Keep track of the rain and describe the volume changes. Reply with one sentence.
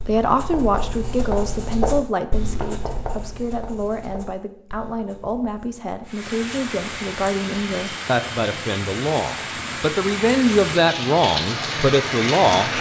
The loudness of the rain goes up.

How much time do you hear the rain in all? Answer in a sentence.
The rain can be heard for 7 seconds in total.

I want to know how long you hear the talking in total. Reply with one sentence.
The talking can be heard for 13 seconds in total.